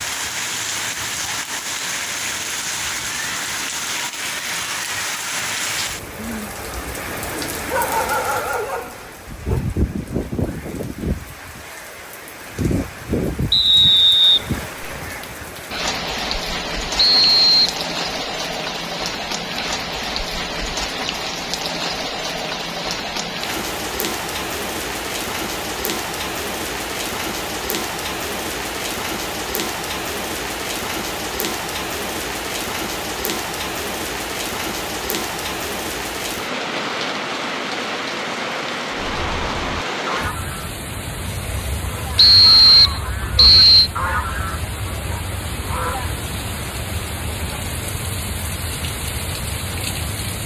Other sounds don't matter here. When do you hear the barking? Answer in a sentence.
The barking can be heard from 7.3 to 9.6 s.